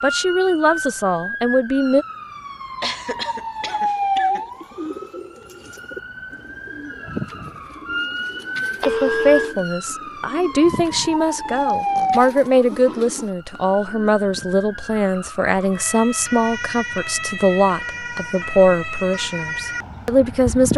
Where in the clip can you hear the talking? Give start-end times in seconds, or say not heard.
0.0-2.0, 8.8-20.7.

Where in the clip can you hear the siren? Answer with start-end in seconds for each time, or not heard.
0.0-20.7.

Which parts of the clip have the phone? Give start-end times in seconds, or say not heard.
8.8-9.6.